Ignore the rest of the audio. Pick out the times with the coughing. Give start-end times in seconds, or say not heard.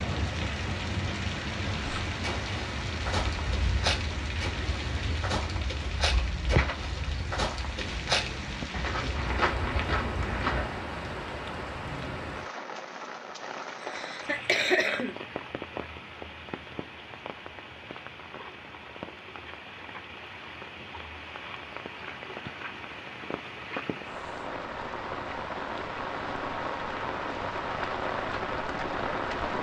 13.8-15.2.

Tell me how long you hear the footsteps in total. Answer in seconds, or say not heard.
9 s.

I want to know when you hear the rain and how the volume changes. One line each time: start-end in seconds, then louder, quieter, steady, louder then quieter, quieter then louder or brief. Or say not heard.
0.0-29.5 quieter then louder.